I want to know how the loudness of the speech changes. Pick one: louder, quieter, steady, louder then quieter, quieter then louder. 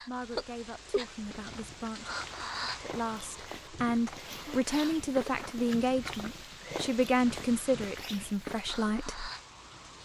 louder.